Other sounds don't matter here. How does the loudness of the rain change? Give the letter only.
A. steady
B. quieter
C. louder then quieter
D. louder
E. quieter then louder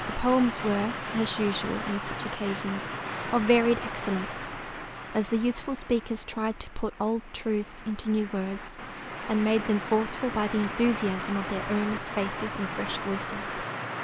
E.